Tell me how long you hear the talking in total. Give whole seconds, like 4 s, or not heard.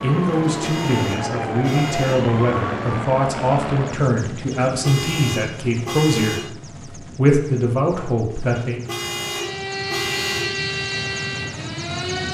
9 s.